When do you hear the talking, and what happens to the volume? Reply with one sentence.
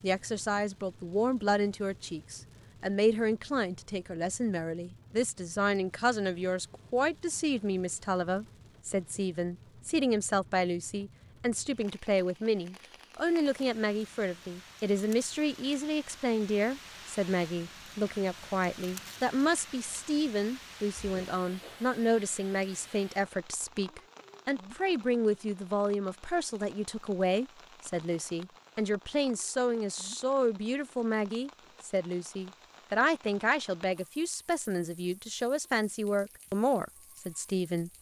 You can hear the talking from 0.0 to 37.9 s, at a steady volume.